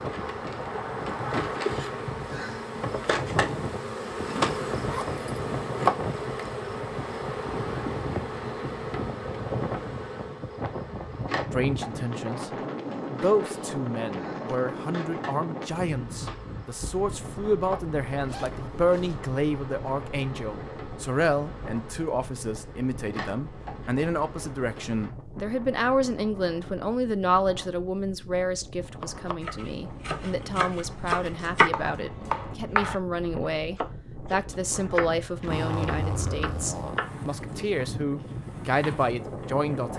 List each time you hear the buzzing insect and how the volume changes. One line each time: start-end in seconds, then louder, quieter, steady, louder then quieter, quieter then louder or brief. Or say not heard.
0.0-25.1 quieter.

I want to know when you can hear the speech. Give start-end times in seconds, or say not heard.
11.5-39.9.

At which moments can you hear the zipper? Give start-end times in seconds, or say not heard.
4.8-5.2, 18.2-19.2, 35.4-37.0.